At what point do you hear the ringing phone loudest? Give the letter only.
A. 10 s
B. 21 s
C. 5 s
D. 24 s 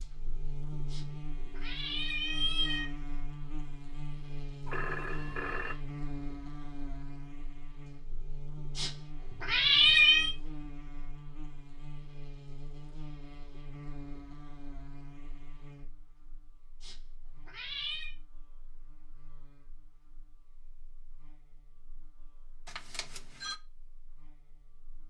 C.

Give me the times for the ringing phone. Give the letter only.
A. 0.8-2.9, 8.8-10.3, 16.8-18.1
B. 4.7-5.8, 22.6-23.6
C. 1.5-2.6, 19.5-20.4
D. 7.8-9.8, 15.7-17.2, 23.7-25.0
B.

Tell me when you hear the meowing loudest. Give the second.
10 s.